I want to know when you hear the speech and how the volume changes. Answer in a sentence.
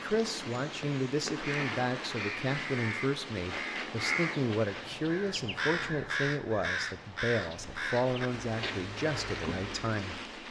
The speech can be heard from 0.0 to 10.4 s, at a steady volume.